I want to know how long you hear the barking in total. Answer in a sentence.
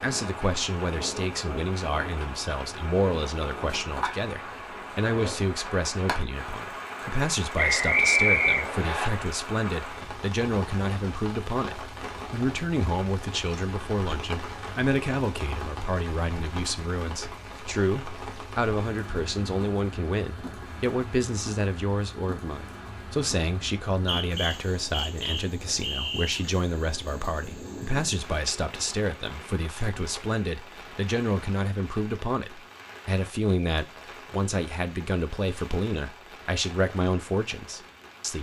The barking can't be heard in this clip.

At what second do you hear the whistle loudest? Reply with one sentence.
The loudest moment of the whistle is at 8 seconds.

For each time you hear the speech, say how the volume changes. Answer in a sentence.
The speech can be heard from 0.0 to 38.3 s, at a steady volume.